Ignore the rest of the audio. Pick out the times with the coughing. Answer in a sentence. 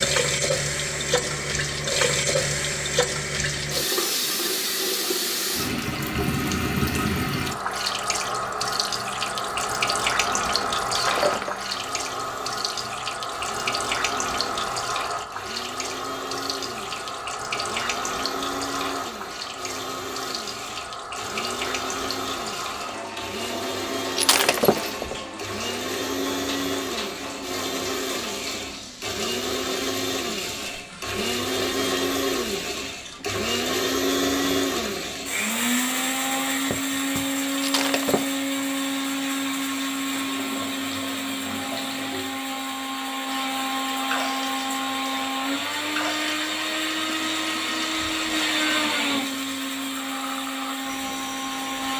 You can't hear the coughing here.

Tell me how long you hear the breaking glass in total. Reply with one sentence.
You can hear the breaking glass for 2 seconds altogether.